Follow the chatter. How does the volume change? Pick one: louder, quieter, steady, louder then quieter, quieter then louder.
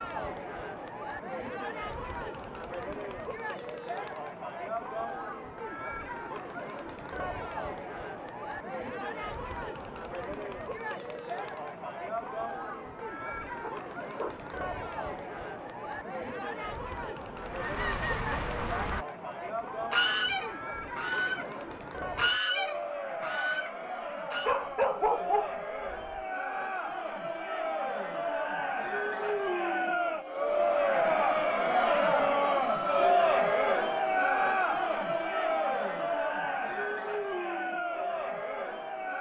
louder.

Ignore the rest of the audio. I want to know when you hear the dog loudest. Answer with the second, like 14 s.
25 s.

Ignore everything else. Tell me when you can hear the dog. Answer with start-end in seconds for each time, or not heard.
13.6-14.3, 24.4-26.2.